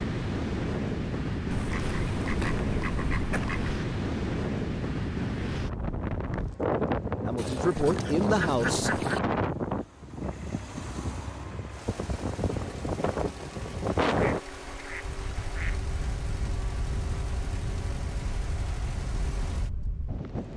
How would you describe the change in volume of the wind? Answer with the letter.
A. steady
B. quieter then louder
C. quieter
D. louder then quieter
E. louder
C.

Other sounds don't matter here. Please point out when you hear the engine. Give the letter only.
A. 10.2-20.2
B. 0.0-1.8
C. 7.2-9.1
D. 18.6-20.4
A.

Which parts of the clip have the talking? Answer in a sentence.
The talking can be heard from 7.2 to 9.1 s.